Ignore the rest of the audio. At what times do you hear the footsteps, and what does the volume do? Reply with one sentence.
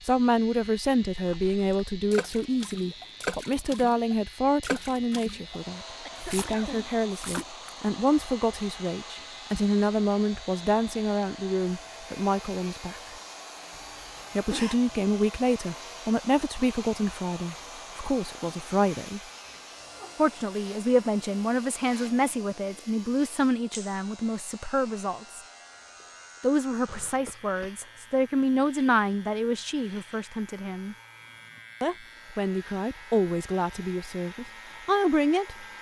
The footsteps can't be heard in this clip.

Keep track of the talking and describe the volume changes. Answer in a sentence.
The loudness of the talking stays about the same.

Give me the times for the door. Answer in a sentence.
The door can't be heard in this clip.